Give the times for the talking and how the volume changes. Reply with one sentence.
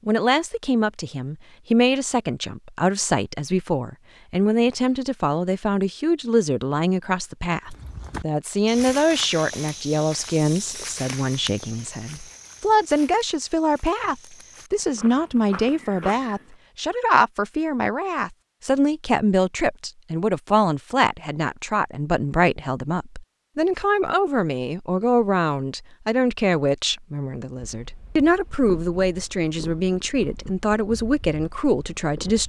You can hear the talking from 0.1 to 32.4 s, at a steady volume.